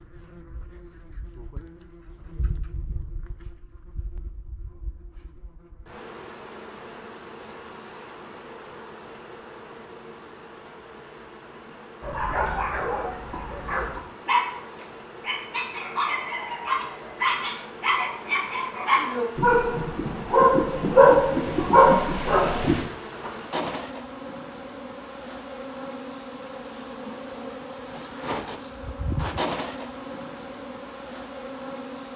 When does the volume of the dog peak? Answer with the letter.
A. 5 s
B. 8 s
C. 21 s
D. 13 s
C.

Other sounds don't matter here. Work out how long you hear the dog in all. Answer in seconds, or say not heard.
11 s.